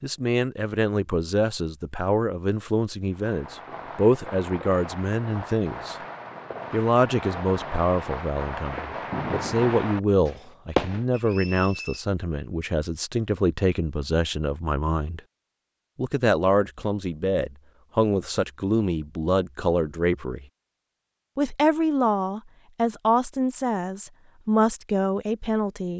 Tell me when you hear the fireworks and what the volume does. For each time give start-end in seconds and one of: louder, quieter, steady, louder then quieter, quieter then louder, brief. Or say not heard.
3.1-11.1 louder.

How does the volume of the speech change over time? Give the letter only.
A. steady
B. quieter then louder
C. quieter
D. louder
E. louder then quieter
A.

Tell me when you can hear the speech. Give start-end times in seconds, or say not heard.
0.0-6.0, 6.7-15.2, 15.9-20.4, 21.4-25.9.